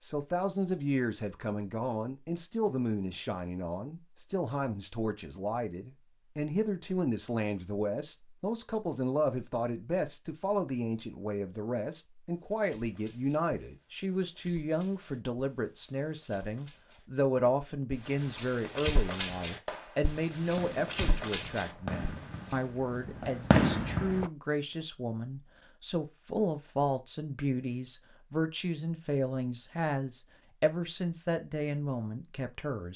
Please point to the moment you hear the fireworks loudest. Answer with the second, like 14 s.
24 s.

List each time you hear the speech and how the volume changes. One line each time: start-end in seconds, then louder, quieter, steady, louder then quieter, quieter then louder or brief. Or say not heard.
0.0-32.9 steady.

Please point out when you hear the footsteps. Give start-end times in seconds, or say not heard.
12.5-22.6.